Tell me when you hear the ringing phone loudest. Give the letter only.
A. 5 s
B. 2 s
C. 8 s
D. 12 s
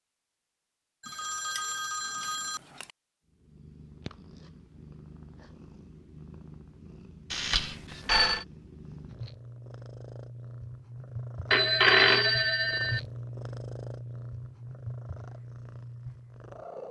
D.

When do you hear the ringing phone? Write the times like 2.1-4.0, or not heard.
1.0-2.9, 7.3-8.4, 11.5-13.0.